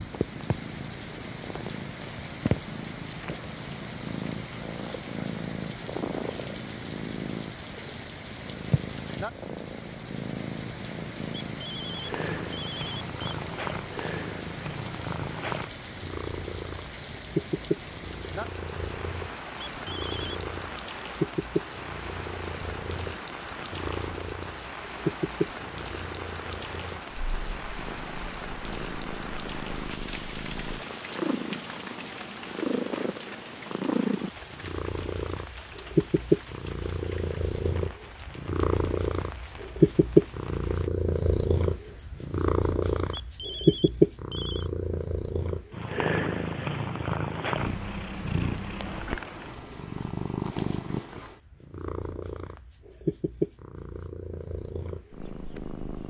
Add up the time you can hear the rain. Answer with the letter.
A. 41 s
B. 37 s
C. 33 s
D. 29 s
A.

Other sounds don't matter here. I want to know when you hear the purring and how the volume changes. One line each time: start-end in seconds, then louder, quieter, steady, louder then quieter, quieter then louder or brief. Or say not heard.
0.0-56.0 louder then quieter.